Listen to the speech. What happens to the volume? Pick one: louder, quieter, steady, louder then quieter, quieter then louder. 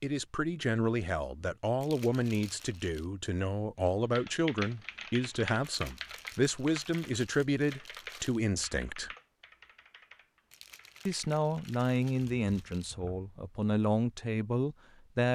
steady.